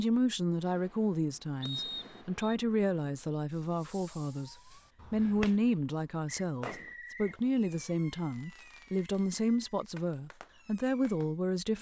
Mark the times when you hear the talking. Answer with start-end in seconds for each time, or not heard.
0.0-11.7.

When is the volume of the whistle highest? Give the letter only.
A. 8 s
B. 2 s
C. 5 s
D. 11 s
B.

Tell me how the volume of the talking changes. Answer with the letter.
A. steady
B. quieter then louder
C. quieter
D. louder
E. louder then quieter
A.